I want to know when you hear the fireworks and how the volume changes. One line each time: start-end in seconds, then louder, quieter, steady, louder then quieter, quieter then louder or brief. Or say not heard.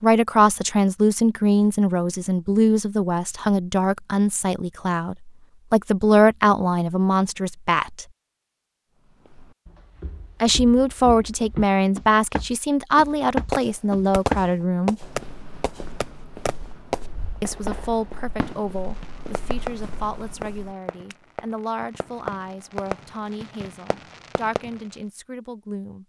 13.5-24.8 quieter.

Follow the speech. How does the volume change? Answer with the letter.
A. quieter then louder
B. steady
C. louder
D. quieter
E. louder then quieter
D.